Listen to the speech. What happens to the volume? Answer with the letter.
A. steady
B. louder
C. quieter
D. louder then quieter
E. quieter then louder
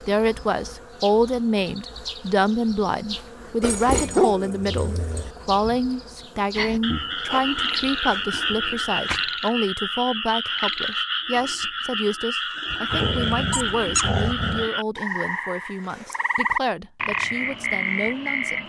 C.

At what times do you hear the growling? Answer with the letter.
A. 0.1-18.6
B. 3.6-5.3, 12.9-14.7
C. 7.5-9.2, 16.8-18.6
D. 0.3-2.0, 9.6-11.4
B.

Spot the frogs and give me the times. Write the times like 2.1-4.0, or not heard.
6.5-18.6.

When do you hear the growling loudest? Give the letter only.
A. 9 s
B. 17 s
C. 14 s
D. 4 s
D.